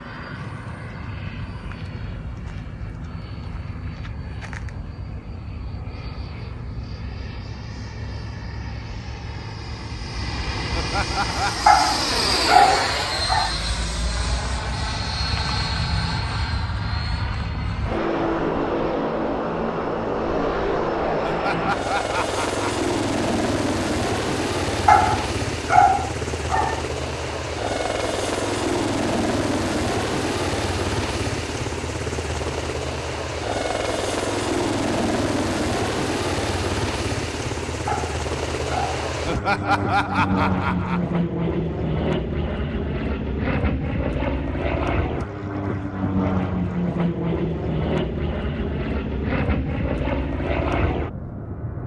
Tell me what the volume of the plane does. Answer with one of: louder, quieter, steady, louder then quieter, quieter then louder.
louder.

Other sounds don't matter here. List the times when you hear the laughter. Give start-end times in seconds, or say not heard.
10.7-11.7, 21.2-22.9, 39.2-41.0.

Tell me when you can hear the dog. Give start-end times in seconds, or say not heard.
11.7-13.5, 24.9-26.8, 37.9-39.0.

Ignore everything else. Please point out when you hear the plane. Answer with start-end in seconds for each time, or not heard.
0.0-51.8.